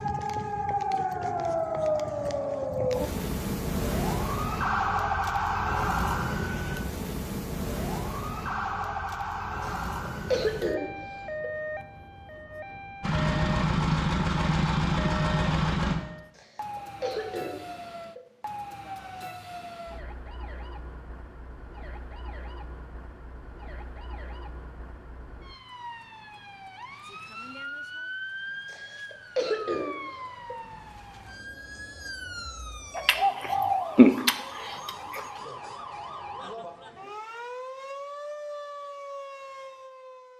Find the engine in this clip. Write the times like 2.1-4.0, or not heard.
13.0-15.9.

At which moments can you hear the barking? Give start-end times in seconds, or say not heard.
not heard.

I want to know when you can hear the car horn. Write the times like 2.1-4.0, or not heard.
not heard.